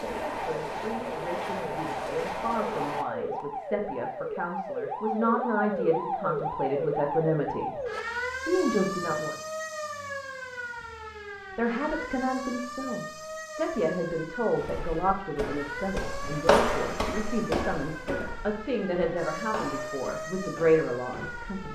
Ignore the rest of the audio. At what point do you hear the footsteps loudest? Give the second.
17 s.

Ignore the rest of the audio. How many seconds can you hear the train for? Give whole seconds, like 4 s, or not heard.
3 s.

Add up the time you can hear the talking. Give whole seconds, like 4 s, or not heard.
19 s.